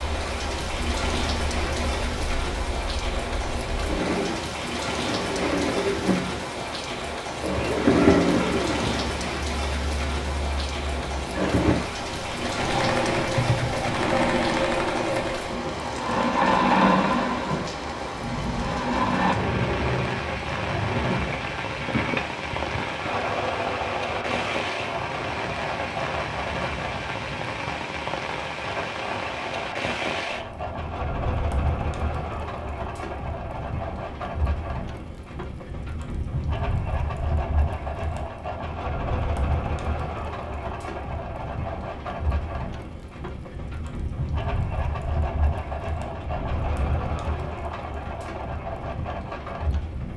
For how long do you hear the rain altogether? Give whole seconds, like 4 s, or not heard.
50 s.